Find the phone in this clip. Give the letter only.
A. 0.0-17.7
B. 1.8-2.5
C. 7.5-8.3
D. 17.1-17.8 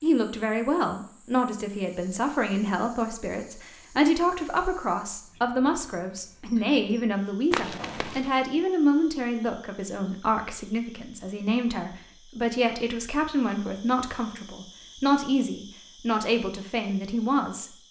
C.